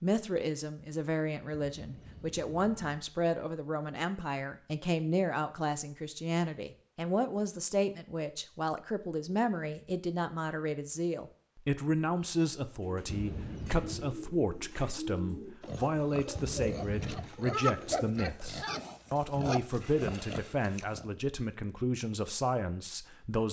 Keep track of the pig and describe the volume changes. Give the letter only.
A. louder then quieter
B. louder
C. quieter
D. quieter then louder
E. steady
A.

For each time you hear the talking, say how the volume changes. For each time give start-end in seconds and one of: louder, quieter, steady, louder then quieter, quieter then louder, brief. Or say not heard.
0.0-23.4 steady.